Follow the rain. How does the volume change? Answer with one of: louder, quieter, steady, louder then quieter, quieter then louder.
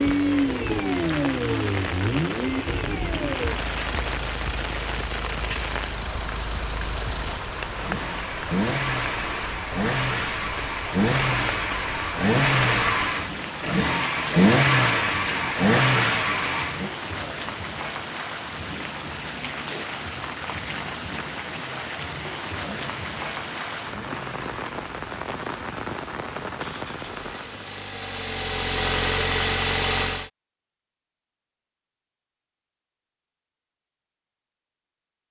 steady.